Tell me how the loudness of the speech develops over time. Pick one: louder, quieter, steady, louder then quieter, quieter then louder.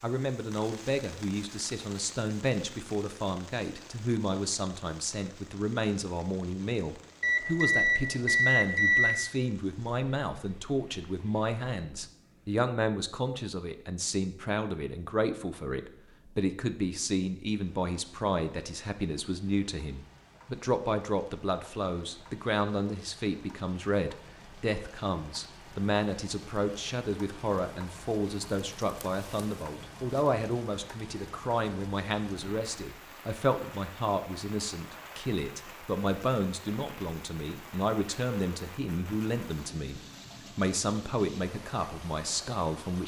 steady.